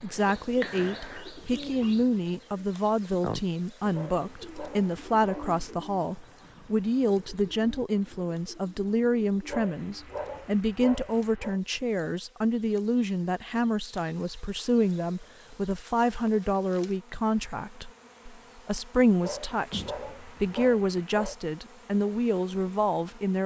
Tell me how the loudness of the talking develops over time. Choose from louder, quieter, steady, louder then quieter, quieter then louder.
steady.